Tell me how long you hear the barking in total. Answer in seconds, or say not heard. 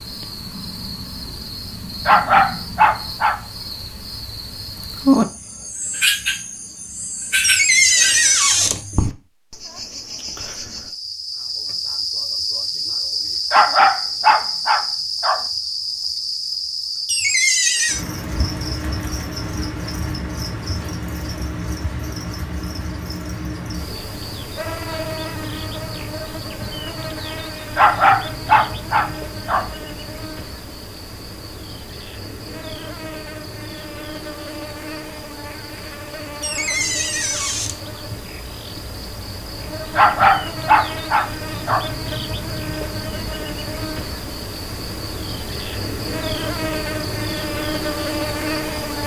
7 s.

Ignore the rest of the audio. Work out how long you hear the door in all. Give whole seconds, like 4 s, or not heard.
4 s.